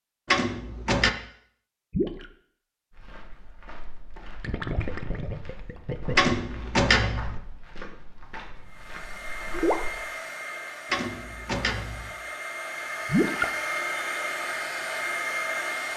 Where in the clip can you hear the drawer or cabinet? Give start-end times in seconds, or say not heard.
0.2-1.1, 6.2-7.4, 10.9-12.2.